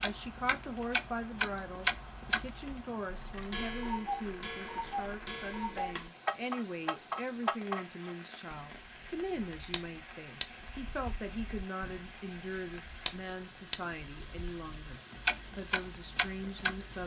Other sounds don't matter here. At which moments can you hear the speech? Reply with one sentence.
You can hear the speech from 0.0 to 17.0 s.